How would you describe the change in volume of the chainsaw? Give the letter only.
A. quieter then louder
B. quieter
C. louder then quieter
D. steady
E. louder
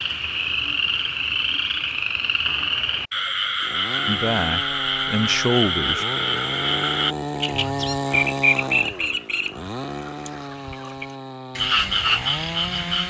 C.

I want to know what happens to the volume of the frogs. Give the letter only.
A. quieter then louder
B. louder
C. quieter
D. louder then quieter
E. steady
E.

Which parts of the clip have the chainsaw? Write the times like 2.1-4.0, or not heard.
3.6-13.0.